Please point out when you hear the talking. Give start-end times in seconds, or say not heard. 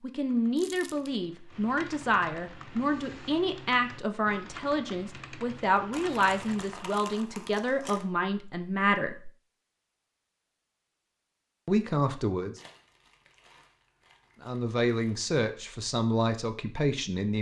0.0-9.3, 11.7-12.6, 14.4-17.3.